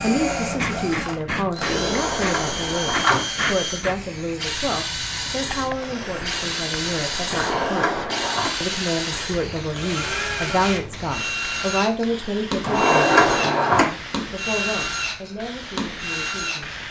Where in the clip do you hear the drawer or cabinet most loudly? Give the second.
13 s.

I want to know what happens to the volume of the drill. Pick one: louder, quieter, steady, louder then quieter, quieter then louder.
steady.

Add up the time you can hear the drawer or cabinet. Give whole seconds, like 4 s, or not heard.
4 s.